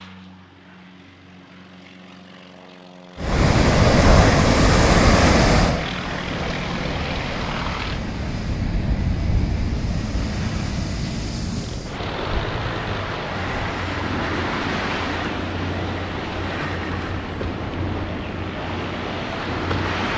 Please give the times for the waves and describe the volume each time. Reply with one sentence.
The waves can be heard from 3.2 to 20.1 s, getting quieter.